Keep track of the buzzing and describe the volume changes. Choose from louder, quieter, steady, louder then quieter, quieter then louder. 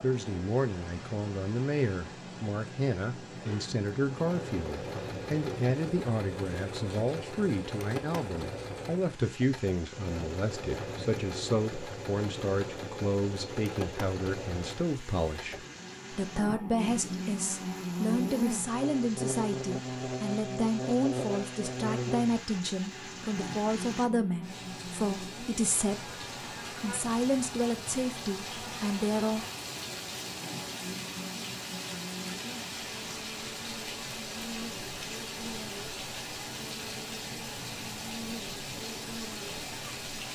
quieter.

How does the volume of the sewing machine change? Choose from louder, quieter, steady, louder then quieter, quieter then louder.
steady.